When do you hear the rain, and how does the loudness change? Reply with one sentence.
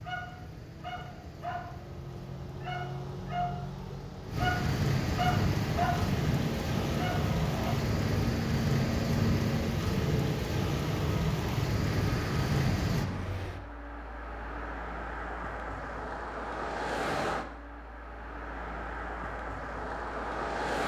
The rain can be heard from 0.0 to 13.1 s, getting louder.